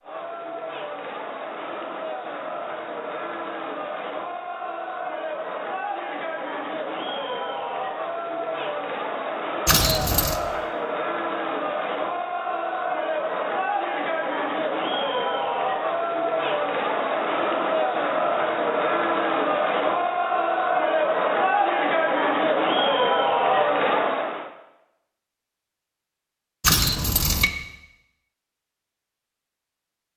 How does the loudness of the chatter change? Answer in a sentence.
The volume of the chatter goes up.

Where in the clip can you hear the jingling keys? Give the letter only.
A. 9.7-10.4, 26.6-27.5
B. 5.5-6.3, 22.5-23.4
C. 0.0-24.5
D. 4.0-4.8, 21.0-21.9
A.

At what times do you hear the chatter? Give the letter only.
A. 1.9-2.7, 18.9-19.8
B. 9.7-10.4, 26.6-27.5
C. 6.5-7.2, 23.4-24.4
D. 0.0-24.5
D.